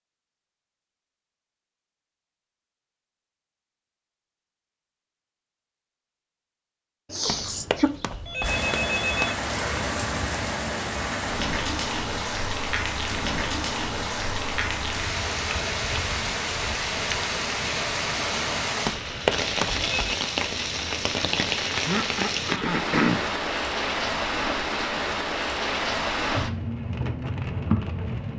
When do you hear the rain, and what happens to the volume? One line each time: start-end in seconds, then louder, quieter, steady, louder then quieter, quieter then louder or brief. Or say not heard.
8.4-28.3 steady.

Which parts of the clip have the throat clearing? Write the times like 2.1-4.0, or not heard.
7.1-7.9, 21.9-23.2.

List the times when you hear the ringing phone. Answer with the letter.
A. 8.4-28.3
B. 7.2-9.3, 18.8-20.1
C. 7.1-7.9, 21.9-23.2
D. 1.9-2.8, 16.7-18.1
B.